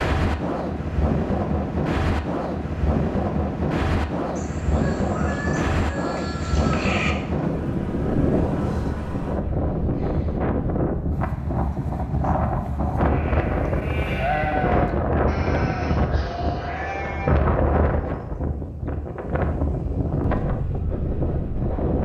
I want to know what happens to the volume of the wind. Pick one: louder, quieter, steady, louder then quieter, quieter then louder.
steady.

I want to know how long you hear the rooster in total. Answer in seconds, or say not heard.
3 s.